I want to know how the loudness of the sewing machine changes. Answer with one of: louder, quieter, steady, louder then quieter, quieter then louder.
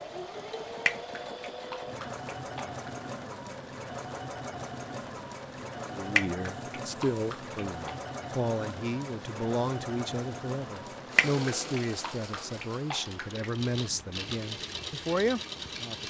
steady.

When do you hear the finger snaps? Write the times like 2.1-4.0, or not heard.
0.8-2.9, 6.2-8.0, 11.2-13.5.